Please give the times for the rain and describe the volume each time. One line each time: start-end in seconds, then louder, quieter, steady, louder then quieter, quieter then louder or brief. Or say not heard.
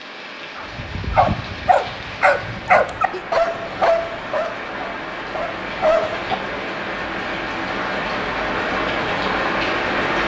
0.0-10.2 louder.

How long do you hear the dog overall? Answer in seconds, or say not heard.
6 s.